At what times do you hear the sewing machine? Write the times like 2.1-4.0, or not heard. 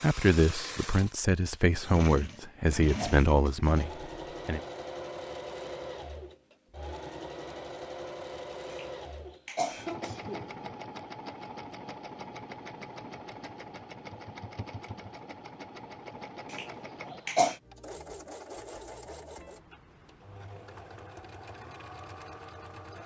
0.0-23.0.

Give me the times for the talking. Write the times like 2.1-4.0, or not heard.
0.0-4.6.